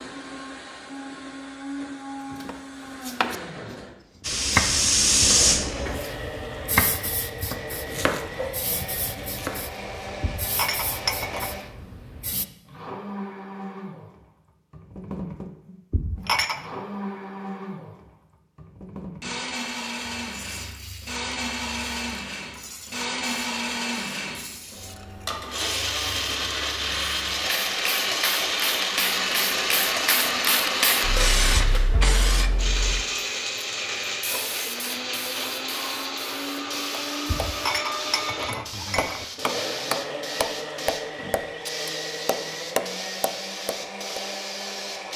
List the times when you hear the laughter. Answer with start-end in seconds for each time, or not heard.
not heard.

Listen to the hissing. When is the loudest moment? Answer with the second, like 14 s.
5 s.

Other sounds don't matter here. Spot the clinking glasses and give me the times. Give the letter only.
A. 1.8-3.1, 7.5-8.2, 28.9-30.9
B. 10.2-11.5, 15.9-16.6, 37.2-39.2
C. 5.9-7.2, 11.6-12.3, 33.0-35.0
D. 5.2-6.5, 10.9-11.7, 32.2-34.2
B.